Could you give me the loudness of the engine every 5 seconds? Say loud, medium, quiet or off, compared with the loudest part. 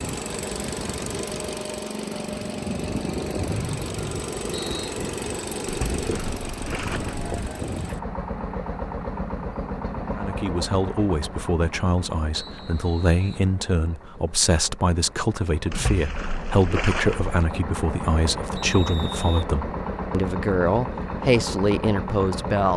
loud, loud, medium, loud, loud.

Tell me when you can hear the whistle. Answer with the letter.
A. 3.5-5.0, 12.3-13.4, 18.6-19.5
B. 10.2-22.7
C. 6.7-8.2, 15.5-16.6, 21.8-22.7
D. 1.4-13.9
A.